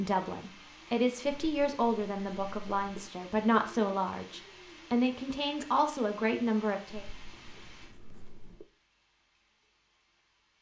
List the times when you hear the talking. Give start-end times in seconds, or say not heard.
0.0-7.0.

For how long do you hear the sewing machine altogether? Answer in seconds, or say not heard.
not heard.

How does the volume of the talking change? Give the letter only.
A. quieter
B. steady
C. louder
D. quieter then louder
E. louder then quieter
B.